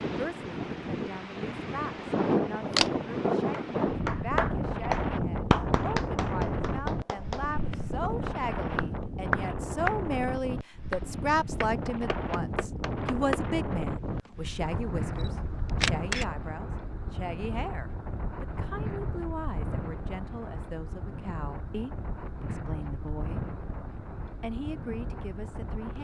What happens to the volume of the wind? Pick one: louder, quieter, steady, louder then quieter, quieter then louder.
quieter.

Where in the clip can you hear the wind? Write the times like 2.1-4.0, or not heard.
0.0-25.9.